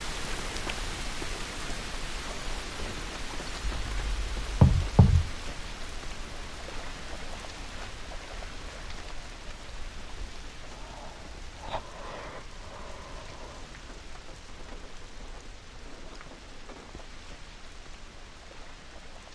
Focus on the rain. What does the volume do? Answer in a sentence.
The volume of the rain goes down.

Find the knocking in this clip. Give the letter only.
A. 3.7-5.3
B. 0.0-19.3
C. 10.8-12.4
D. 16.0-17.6
A.